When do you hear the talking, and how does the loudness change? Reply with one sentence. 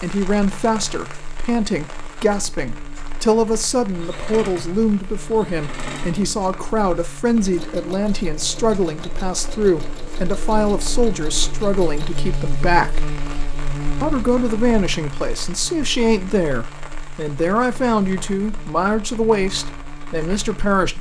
You can hear the talking from 0.0 to 13.1 s, at a steady volume; and from 14.0 to 20.9 s, at a steady volume.